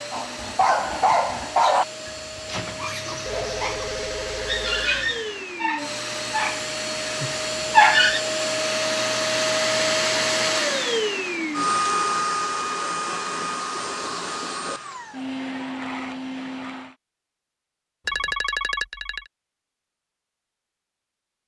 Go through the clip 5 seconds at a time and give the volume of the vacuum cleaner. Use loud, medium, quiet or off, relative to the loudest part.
medium, loud, loud, medium, off.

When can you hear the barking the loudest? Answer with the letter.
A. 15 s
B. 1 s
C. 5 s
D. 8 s
D.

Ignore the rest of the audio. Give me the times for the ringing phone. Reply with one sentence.
You can hear the ringing phone from 3.2 to 5.2 s and from 18.1 to 19.3 s.